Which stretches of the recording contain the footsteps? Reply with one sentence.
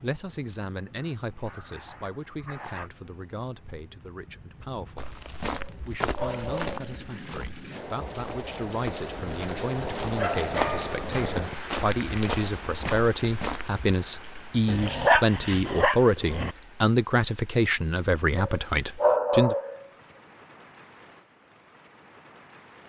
The footsteps can be heard from 5.0 to 13.8 s.